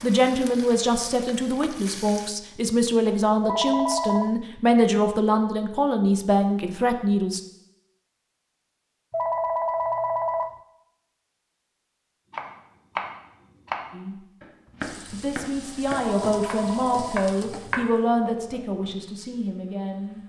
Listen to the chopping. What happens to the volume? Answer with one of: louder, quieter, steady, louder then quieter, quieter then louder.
quieter.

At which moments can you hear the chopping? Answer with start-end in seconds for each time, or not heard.
12.3-17.9.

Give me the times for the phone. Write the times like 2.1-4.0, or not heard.
3.4-4.3, 9.1-10.6, 16.1-17.3.